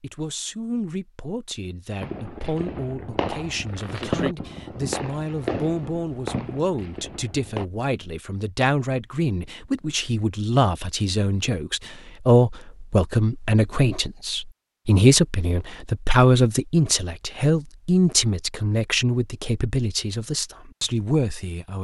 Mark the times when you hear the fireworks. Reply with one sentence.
The fireworks can be heard from 2.0 to 7.7 s.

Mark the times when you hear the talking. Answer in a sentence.
You can hear the talking from 0.0 to 21.8 s.